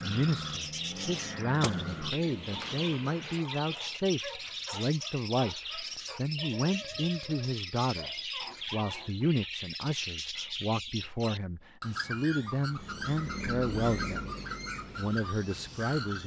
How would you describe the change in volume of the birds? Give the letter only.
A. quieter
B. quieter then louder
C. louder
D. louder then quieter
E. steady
E.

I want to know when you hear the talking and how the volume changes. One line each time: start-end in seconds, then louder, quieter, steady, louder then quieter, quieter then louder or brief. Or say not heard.
0.0-14.2 steady
14.9-16.2 brief.